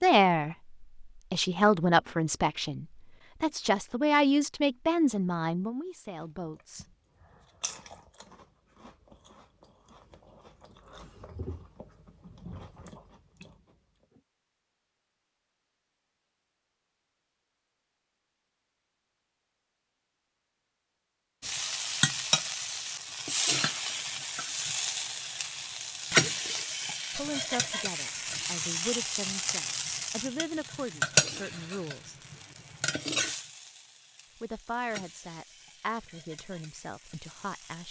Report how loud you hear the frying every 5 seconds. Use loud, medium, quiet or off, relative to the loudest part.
off, off, off, off, loud, loud, loud, quiet.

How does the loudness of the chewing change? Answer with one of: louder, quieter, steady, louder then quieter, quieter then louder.
quieter then louder.